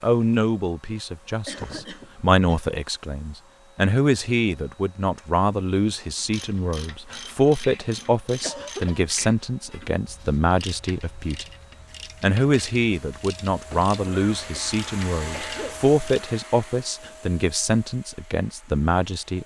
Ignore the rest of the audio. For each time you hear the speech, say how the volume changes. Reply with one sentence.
You can hear the speech from 0.0 to 11.4 s, at a steady volume; and from 12.2 to 19.4 s, at a steady volume.